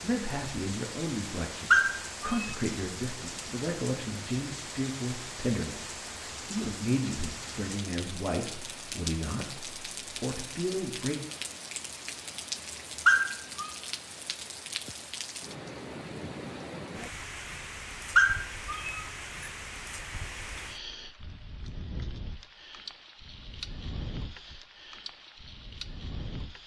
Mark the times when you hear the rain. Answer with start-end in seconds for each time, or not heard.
0.0-26.6.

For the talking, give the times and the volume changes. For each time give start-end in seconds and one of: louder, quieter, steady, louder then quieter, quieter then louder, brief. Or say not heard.
0.0-11.2 steady.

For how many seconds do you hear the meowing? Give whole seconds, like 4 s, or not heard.
2 s.